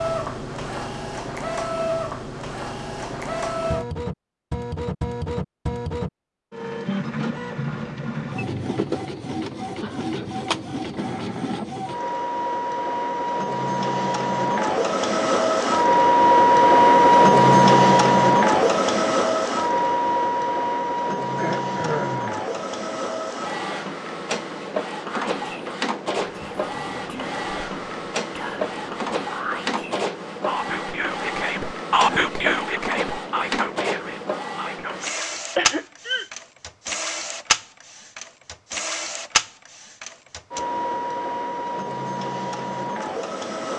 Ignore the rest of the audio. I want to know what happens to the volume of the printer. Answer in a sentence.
The loudness of the printer goes up, then down.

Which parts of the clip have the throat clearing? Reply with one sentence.
The throat clearing can be heard from 9.8 to 10.4 s, from 21.2 to 22.4 s and from 35.5 to 36.3 s.